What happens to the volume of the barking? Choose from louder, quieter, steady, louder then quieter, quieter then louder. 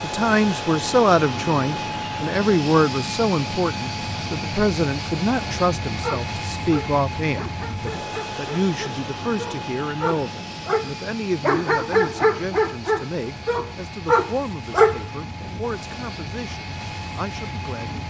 louder.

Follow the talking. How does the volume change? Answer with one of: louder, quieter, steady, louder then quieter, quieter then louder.
quieter.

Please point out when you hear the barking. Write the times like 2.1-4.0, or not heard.
6.0-15.6.